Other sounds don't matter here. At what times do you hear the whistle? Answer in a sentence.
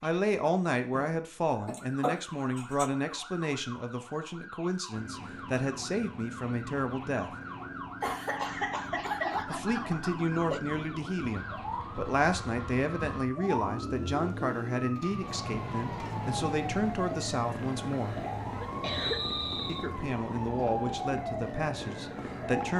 The whistle can be heard from 18.9 to 19.9 s.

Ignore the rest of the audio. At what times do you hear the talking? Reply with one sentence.
The talking can be heard from 0.0 to 7.3 s, from 9.4 to 18.2 s and from 19.6 to 22.7 s.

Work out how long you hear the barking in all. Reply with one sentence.
The barking can't be heard in this clip.